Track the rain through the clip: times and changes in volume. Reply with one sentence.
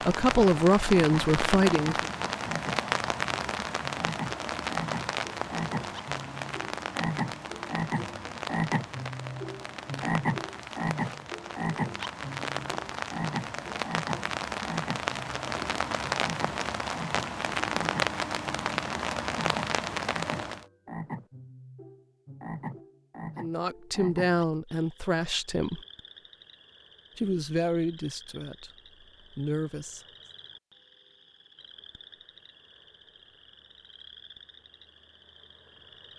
The rain can be heard from 0.0 to 20.6 s, getting quieter then louder.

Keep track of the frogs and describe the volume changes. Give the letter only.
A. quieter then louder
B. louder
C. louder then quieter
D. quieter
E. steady
D.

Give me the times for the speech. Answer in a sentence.
The speech can be heard from 0.1 to 2.0 s, from 23.4 to 25.8 s and from 27.1 to 30.1 s.